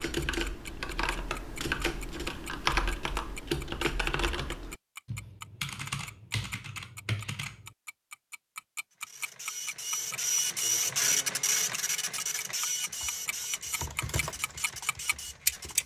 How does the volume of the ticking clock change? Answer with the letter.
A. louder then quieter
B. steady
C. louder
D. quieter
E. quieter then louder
C.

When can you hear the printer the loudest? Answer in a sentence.
The loudest moment of the printer is at 11 seconds.